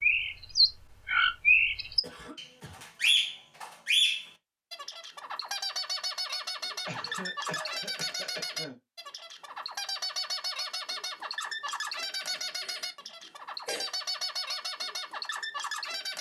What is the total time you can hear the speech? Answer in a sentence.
The speech can't be heard in this clip.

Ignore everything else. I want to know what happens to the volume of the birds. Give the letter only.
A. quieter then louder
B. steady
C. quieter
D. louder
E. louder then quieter
C.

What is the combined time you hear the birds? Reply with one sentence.
You can hear the birds for 16 seconds altogether.